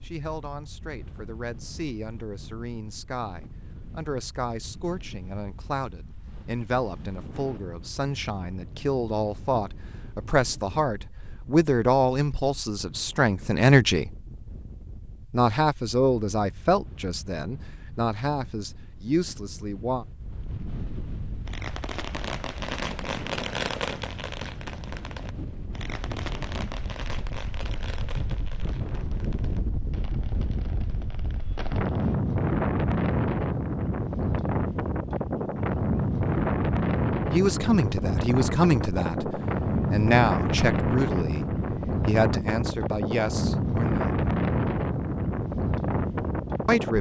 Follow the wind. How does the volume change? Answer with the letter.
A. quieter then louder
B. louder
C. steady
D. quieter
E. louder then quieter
B.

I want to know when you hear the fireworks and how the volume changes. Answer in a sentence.
You can hear the fireworks from 21.4 to 32.1 s, getting quieter.